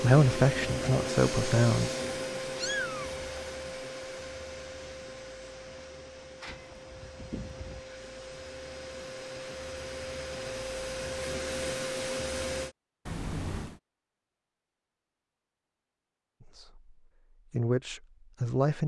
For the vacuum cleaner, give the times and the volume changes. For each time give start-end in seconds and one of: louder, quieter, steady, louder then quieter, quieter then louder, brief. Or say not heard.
0.0-12.8 quieter then louder.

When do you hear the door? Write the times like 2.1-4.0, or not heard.
5.9-6.6.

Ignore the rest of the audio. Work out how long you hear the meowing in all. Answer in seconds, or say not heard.
3 s.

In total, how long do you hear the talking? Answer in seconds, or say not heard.
4 s.